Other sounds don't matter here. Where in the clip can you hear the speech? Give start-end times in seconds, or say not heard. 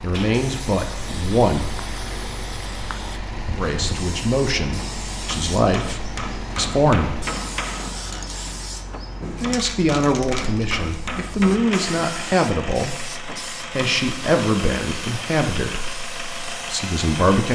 0.0-1.9, 3.5-7.2, 9.3-17.5.